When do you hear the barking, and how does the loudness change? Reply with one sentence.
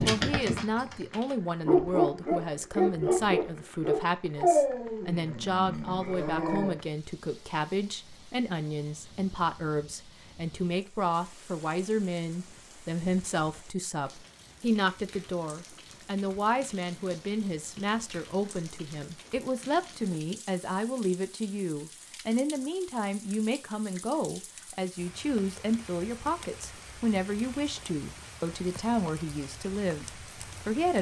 The barking can be heard from 0.0 to 6.8 s, getting louder then quieter.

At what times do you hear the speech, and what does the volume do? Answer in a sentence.
You can hear the speech from 0.1 to 30.9 s, at a steady volume.